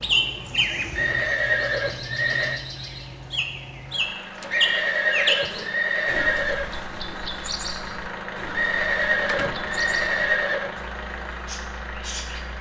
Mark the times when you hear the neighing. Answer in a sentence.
You can hear the neighing from 0.9 to 2.6 s, from 4.5 to 6.7 s and from 8.5 to 10.7 s.